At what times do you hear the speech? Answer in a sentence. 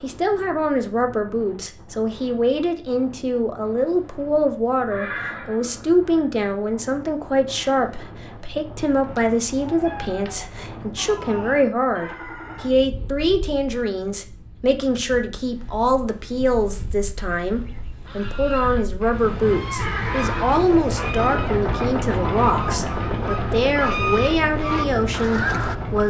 You can hear the speech from 0.0 to 26.0 s.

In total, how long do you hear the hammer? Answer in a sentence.
The hammer can't be heard in this clip.